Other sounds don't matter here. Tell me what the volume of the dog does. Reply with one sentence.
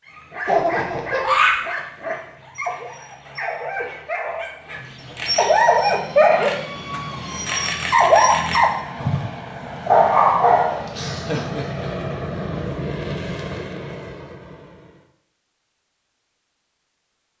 The volume of the dog goes up.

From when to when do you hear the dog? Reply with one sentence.
The dog can be heard from 0.1 to 11.3 s.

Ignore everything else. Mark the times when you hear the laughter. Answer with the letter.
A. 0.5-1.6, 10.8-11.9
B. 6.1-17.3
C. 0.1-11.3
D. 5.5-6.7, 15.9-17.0
A.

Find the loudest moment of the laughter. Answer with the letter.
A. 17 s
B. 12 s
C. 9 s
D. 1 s
D.